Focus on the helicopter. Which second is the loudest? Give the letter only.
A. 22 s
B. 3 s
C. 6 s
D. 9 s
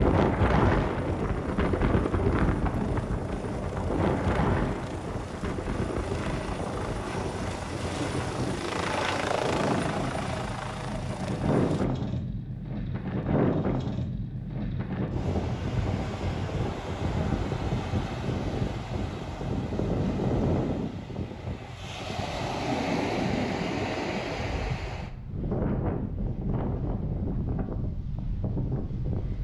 D.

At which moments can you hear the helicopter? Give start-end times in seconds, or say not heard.
0.1-11.8.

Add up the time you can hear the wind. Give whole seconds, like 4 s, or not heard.
29 s.